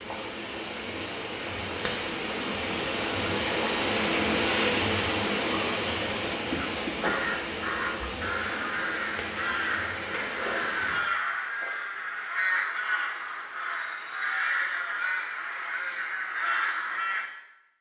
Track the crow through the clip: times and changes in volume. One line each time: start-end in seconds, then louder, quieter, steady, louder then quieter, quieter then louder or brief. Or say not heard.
6.8-17.3 steady.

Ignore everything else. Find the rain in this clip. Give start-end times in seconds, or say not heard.
0.0-11.1.